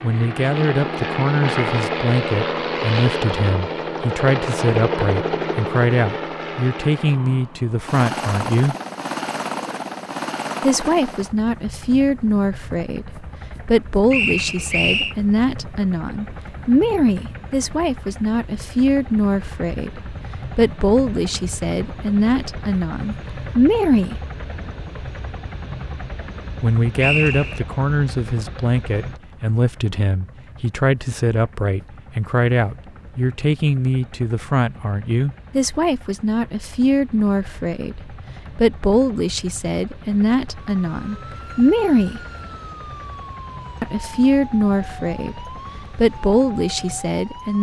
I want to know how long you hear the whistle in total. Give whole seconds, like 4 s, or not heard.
2 s.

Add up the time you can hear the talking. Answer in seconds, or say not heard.
42 s.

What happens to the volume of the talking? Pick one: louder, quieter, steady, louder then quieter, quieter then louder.
steady.